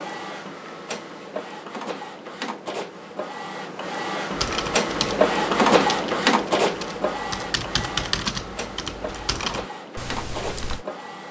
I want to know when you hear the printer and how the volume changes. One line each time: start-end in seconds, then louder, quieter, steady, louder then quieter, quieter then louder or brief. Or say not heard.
0.0-11.2 louder then quieter.